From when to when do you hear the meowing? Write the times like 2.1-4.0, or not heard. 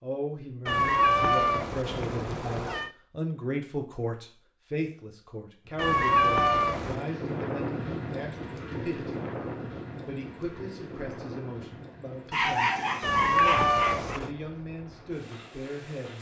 0.7-2.9, 5.8-7.0, 13.0-14.3.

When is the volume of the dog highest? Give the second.
13 s.